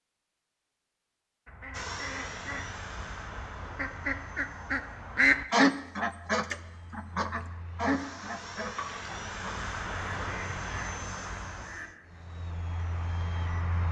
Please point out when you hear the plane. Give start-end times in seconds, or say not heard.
1.7-13.8.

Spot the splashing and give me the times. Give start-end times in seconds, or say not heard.
8.8-9.2.